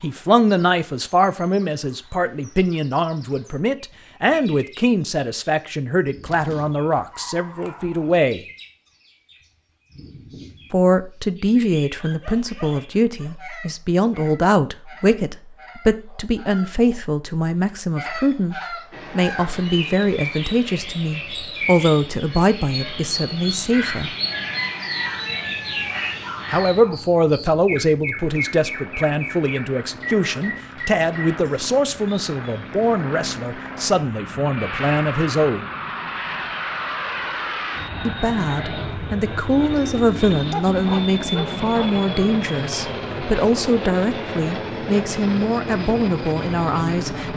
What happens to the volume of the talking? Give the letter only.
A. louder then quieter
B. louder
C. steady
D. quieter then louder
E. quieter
C.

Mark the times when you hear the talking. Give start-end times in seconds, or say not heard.
0.0-8.4, 10.7-24.1, 26.5-35.6, 38.0-47.3.